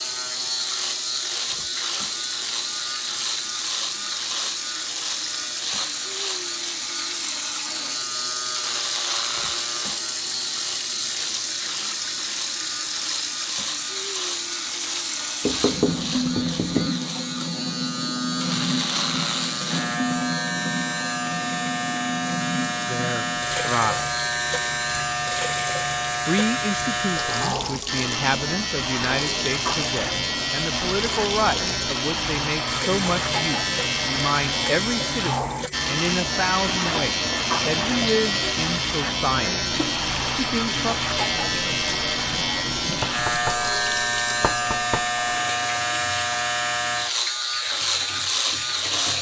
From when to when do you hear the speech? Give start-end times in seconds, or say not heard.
22.9-24.1, 26.2-39.5, 40.4-41.0.